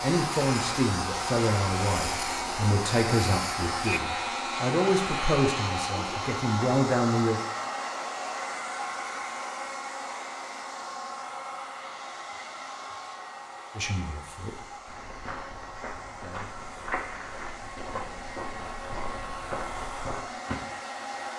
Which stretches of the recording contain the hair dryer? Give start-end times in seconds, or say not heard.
0.0-21.3.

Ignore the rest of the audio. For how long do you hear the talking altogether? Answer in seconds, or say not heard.
9 s.